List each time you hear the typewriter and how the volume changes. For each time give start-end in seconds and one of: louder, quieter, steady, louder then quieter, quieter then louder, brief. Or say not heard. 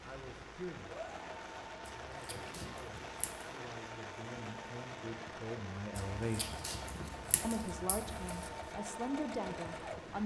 not heard.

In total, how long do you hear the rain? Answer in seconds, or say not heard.
10 s.